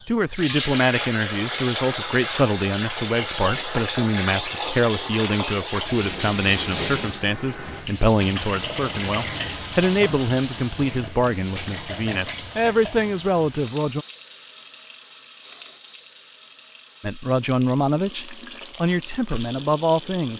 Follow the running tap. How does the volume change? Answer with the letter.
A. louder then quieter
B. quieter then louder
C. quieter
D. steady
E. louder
C.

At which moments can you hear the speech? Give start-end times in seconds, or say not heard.
0.1-14.1, 17.0-20.3.